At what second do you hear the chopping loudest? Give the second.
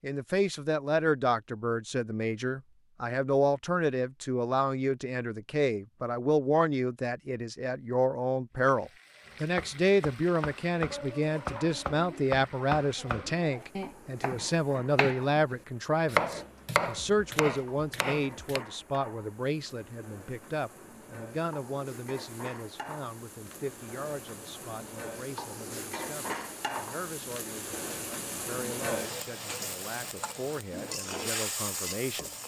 16 s.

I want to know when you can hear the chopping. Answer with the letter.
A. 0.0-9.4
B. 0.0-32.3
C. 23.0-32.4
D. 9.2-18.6
D.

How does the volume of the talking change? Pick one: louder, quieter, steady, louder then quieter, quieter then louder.
quieter.